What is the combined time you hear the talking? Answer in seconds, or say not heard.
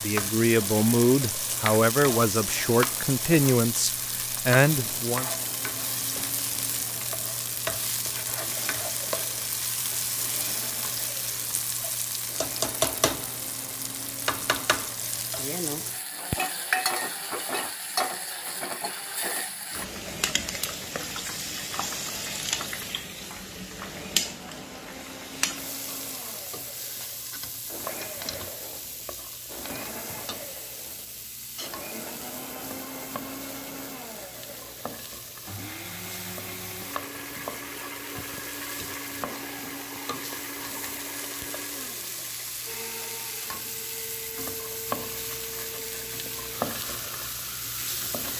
5 s.